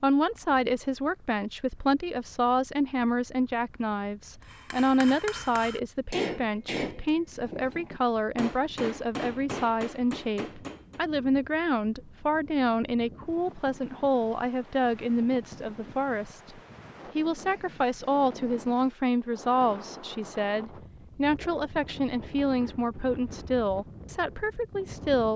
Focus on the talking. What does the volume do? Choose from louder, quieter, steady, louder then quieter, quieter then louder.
steady.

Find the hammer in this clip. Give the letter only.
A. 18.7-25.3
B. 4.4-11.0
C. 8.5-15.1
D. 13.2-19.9
B.